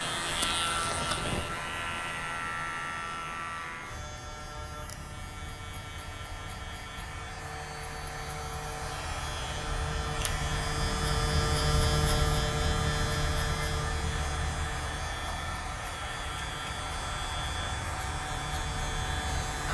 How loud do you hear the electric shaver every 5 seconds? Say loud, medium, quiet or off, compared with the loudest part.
loud, medium, loud, medium.